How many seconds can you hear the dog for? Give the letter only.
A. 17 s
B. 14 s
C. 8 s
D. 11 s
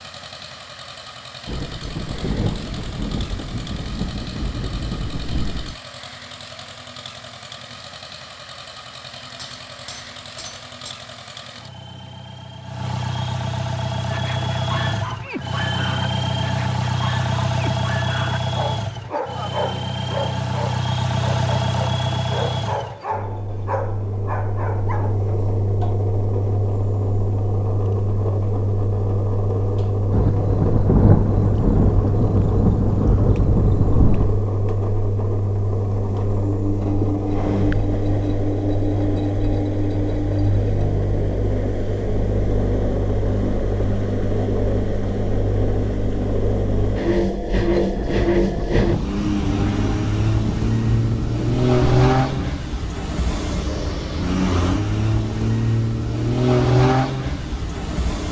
D.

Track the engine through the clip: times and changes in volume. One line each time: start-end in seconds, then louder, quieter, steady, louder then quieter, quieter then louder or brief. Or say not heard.
0.0-58.2 louder.